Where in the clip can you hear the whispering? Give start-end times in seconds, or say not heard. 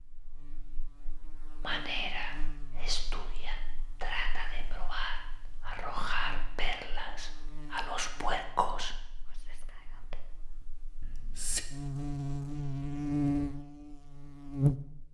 1.6-11.7.